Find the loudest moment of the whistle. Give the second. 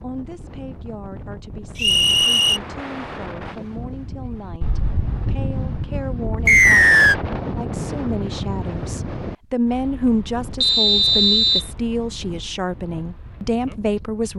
7 s.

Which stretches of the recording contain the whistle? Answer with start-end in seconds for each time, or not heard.
1.8-2.6, 6.5-7.2, 10.6-11.7.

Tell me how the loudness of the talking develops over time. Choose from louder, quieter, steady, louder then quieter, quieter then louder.
louder.